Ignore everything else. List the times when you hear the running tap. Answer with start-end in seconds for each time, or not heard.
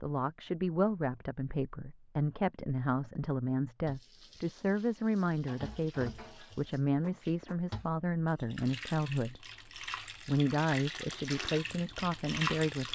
3.9-12.9.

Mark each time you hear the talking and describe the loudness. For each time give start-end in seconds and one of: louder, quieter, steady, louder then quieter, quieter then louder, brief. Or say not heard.
0.0-9.4 steady
10.2-12.9 brief.